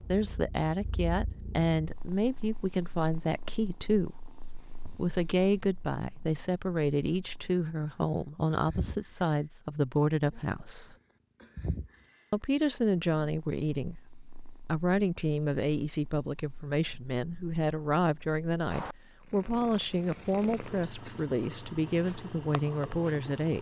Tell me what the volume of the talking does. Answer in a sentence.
The loudness of the talking stays about the same.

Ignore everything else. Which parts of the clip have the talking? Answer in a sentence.
The talking can be heard from 0.1 to 4.3 s, from 5.0 to 10.9 s and from 12.3 to 23.5 s.